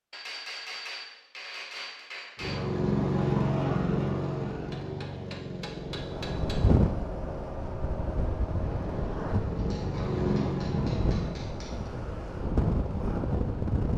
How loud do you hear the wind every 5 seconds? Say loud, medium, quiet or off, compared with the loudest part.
off, loud, loud.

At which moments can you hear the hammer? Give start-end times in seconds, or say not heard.
0.1-2.6, 4.7-6.7, 9.6-11.9.